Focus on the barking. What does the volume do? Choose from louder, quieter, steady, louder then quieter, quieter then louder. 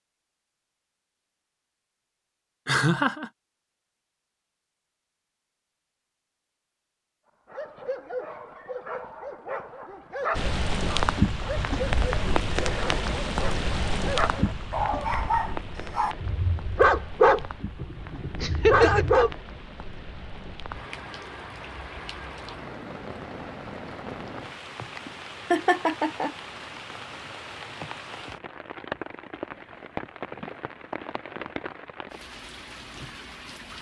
louder.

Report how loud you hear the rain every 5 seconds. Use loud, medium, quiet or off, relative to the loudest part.
off, off, loud, quiet, medium, medium, medium.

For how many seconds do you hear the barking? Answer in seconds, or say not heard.
12 s.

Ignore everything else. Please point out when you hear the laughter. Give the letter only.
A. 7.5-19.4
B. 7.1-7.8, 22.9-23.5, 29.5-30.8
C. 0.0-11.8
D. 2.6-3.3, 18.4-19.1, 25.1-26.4
D.